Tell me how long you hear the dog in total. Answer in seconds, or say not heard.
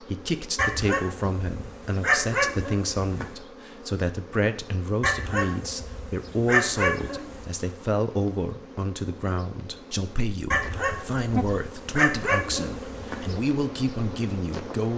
8 s.